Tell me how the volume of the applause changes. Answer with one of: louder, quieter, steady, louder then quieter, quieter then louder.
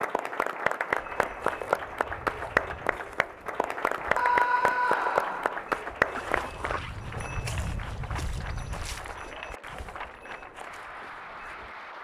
quieter.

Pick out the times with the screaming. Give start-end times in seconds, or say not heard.
4.2-5.6.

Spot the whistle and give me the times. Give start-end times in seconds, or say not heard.
not heard.